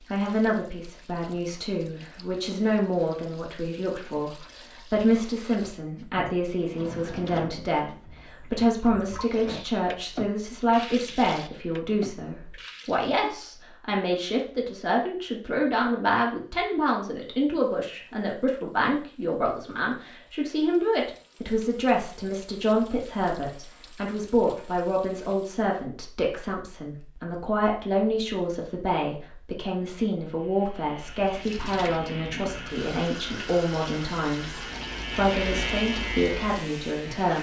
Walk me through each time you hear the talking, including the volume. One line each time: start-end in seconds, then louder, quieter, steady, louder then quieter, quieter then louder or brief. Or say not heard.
0.1-37.3 steady.